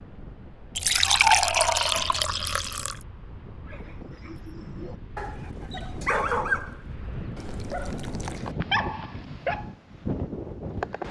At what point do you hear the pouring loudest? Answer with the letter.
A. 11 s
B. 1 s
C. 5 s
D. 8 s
B.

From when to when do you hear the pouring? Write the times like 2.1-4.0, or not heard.
0.8-3.0, 7.3-8.4.